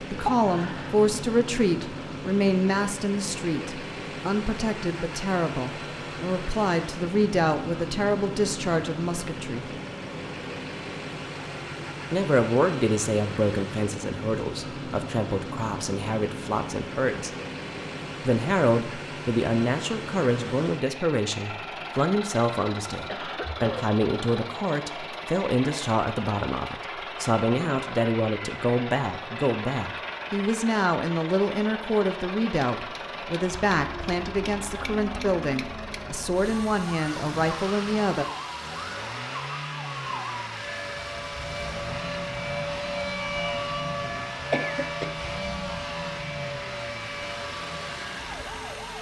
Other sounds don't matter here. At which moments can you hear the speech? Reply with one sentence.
The speech can be heard from 0.0 to 9.7 s, from 12.1 to 17.3 s and from 18.2 to 38.2 s.